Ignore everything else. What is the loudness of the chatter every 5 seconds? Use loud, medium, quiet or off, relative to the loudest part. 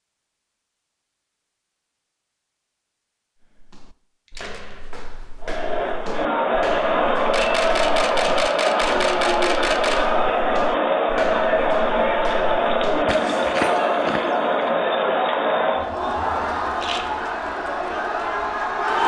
off, loud, loud, loud.